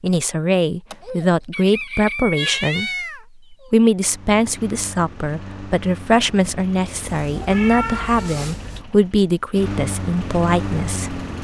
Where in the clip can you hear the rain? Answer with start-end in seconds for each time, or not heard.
not heard.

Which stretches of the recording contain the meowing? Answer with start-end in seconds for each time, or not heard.
2.4-3.7, 7.0-8.8.